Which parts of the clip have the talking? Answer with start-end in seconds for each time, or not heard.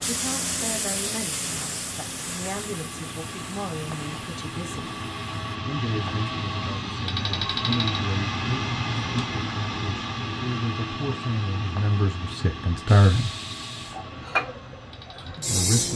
0.1-5.0, 5.7-13.3, 15.3-15.9.